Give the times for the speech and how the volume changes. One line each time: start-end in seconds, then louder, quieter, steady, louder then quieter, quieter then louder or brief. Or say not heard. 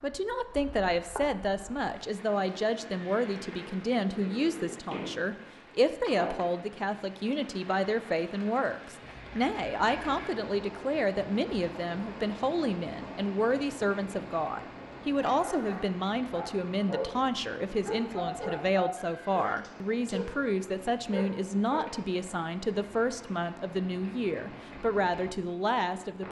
0.0-26.2 steady.